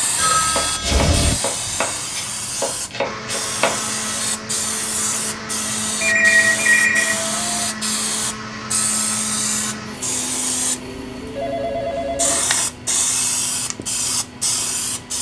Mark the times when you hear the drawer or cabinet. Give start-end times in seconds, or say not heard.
not heard.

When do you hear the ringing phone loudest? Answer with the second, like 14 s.
6 s.